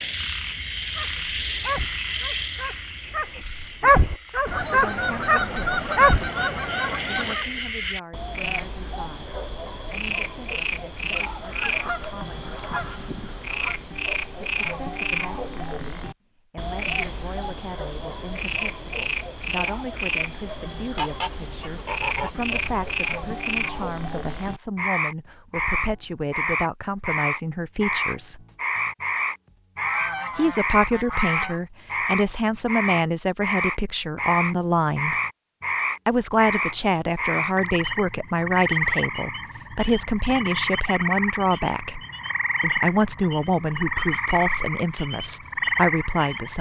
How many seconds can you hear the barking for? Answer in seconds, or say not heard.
7 s.